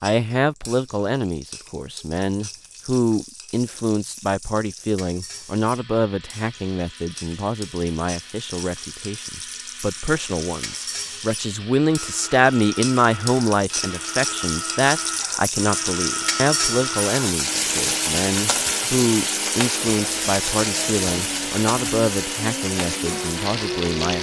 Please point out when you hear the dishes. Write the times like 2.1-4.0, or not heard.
not heard.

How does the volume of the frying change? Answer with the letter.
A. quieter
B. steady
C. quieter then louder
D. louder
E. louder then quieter
D.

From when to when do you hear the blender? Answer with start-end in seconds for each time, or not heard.
5.6-24.1.